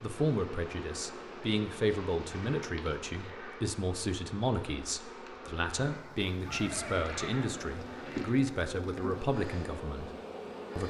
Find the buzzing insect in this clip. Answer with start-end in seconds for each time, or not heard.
0.0-10.8.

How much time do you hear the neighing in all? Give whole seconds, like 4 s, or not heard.
3 s.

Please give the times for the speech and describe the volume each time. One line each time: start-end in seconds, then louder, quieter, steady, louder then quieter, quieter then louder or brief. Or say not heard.
0.0-10.1 steady.